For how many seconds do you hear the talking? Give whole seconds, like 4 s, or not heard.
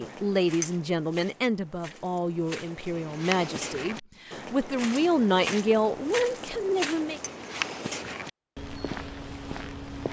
7 s.